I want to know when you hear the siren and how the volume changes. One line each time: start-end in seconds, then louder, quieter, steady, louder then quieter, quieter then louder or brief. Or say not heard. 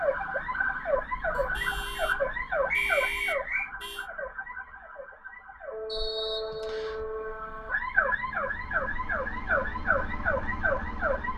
0.0-11.3 quieter then louder.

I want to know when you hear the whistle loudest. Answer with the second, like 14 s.
3 s.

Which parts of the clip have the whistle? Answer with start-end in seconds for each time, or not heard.
2.7-3.7, 5.8-7.0.